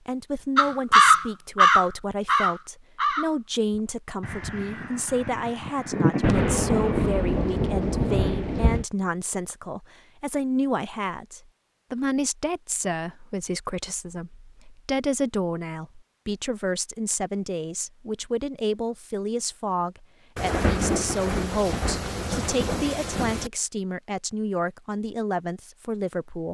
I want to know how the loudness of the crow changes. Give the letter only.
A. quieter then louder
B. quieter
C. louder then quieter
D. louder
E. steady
A.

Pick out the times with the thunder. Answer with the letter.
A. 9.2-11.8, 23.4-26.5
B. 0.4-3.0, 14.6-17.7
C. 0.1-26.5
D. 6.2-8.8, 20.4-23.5
D.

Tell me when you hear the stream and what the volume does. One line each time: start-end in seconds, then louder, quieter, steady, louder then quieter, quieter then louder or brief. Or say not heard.
not heard.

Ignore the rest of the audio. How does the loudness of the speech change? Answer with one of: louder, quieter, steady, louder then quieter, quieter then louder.
steady.